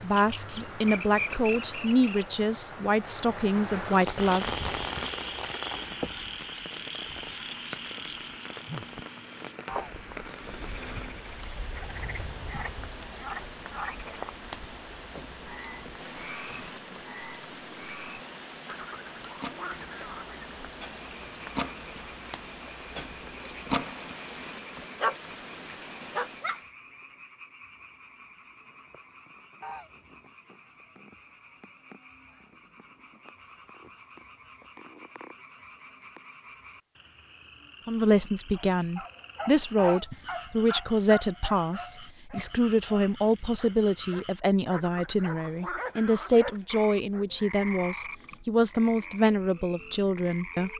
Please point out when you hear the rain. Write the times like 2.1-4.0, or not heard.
0.0-26.7.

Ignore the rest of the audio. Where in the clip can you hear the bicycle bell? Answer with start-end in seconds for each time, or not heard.
not heard.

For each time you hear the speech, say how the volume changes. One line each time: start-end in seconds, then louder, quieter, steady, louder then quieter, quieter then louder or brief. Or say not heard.
0.0-4.7 steady
37.9-50.7 steady.